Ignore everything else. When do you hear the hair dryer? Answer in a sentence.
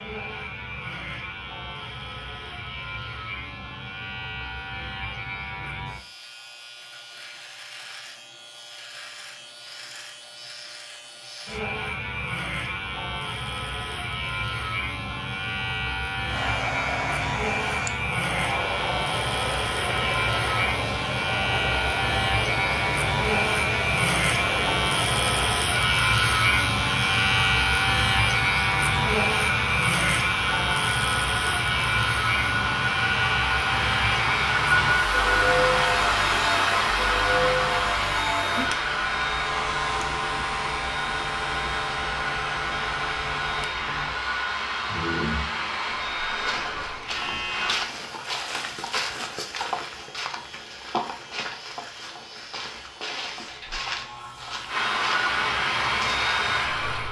You can hear the hair dryer from 16.2 to 47.8 s and from 54.6 to 57.0 s.